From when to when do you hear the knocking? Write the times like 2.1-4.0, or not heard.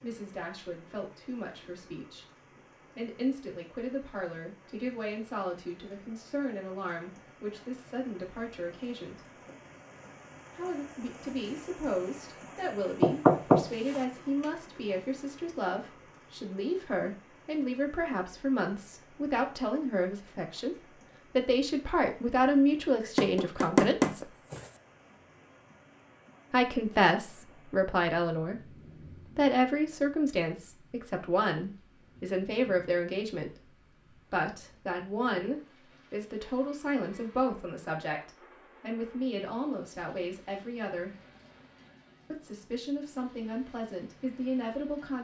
13.0-14.0, 23.1-24.6.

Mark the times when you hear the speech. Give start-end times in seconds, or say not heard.
0.0-9.3, 10.6-20.8, 21.4-24.3, 26.5-28.8, 29.4-41.1, 42.3-45.2.